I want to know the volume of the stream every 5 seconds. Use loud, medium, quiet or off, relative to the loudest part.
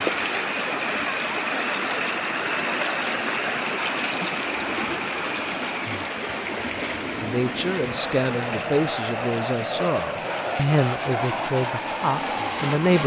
loud, medium, medium.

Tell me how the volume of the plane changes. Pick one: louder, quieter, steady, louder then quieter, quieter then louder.
louder.